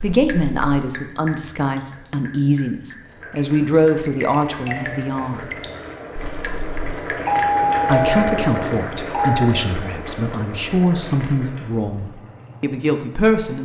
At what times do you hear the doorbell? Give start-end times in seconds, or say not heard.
4.4-5.2, 7.2-9.5.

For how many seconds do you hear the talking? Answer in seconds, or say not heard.
11 s.